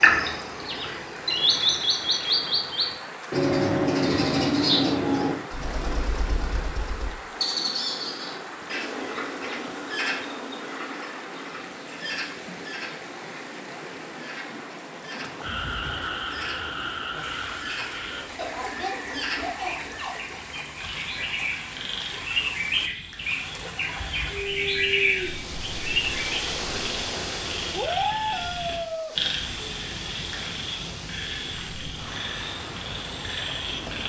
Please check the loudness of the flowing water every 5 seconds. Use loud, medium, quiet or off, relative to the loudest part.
medium, medium, medium, medium, medium, loud, medium.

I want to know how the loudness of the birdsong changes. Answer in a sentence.
The volume of the birdsong goes down, then up.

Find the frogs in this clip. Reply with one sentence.
You can hear the frogs from 15.4 to 34.0 s.